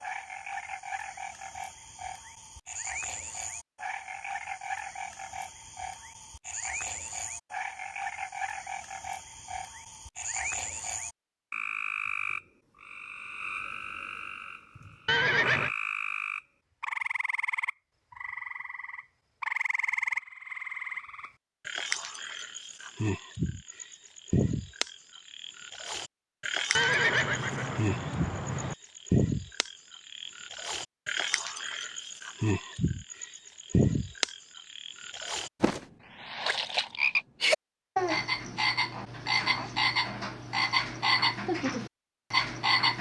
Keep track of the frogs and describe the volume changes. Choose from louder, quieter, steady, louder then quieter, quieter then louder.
louder.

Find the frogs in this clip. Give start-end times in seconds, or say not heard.
0.0-42.9.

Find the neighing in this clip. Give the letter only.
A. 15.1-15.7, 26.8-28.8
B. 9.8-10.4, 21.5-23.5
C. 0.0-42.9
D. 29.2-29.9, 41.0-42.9
A.